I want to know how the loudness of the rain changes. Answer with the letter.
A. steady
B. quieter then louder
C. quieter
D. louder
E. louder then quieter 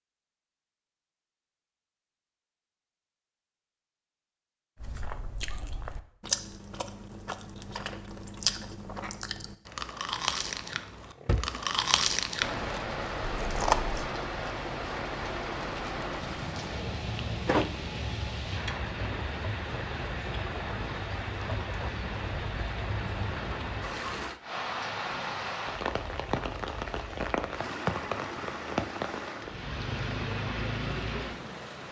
A.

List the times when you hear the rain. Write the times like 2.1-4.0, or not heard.
12.4-31.8.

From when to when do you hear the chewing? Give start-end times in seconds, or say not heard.
4.8-14.1.